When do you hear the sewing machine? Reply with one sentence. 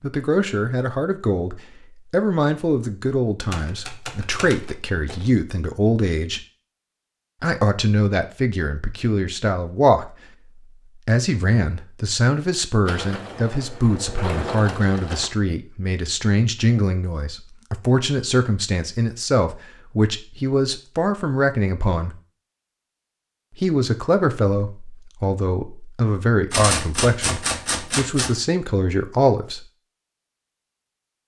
You can hear the sewing machine from 12.8 to 15.3 s.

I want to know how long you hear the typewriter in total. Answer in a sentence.
You can hear the typewriter for 4 seconds altogether.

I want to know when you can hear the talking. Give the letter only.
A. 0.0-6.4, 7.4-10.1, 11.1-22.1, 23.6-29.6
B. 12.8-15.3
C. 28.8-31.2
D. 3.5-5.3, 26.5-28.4
A.